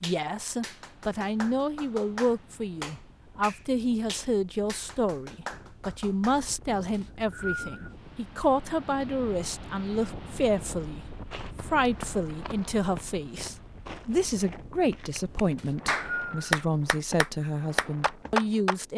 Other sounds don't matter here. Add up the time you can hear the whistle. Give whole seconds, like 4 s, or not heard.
2 s.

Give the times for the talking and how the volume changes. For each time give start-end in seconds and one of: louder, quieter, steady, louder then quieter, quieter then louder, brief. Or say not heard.
0.0-18.9 steady.